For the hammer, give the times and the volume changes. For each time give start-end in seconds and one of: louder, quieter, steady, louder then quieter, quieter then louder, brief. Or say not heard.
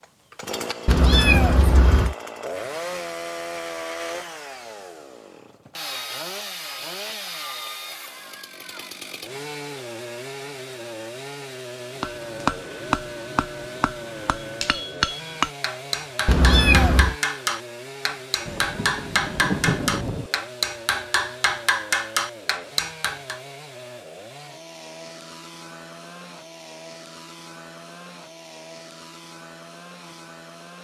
12.0-23.4 steady.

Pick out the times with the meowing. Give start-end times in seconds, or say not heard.
0.8-2.1, 16.2-17.1.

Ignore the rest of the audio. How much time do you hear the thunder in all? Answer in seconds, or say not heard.
2 s.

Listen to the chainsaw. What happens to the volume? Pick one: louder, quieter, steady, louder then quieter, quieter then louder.
quieter.